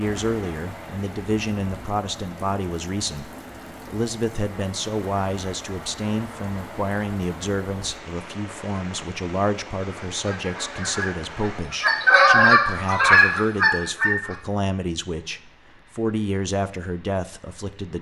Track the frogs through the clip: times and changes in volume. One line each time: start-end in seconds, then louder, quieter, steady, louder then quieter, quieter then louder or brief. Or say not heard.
not heard.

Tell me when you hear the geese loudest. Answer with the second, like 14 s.
12 s.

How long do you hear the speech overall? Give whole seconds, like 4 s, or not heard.
18 s.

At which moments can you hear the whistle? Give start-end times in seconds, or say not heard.
not heard.